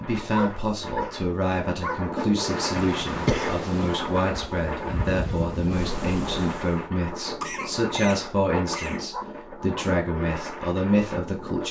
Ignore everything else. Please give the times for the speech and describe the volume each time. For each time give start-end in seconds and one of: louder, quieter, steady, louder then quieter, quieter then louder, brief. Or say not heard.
0.0-11.6 steady.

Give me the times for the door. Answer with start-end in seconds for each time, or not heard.
not heard.